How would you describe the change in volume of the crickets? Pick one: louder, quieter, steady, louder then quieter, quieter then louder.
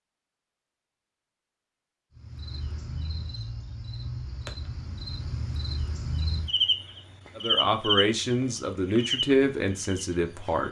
louder then quieter.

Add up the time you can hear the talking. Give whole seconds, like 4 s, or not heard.
3 s.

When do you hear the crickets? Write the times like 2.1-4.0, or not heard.
2.1-10.6.